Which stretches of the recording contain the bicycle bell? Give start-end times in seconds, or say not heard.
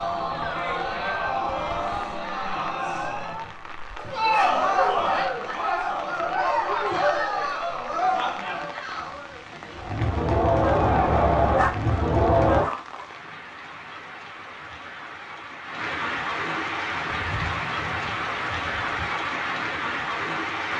not heard.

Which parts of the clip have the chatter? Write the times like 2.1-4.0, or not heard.
0.0-12.7.